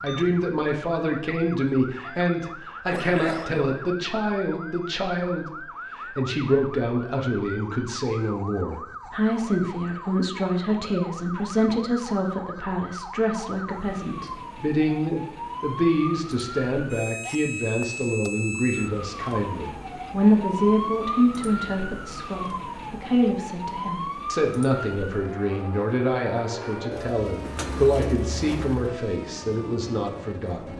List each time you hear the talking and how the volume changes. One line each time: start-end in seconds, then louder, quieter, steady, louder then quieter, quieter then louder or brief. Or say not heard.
0.0-30.7 steady.